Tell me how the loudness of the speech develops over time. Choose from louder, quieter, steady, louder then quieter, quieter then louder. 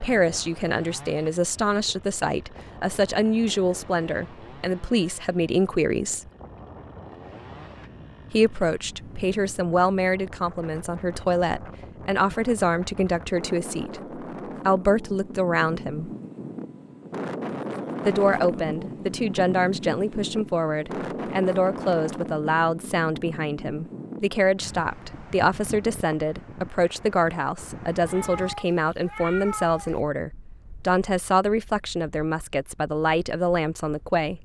steady.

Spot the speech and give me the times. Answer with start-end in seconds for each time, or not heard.
0.0-6.2, 8.3-16.1, 18.1-34.4.